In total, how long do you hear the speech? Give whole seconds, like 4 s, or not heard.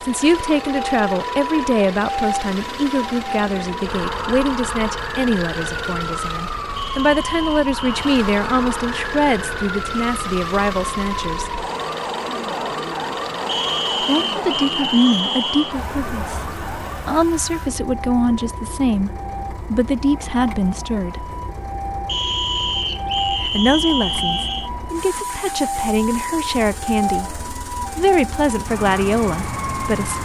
26 s.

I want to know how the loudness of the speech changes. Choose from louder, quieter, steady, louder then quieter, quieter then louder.
steady.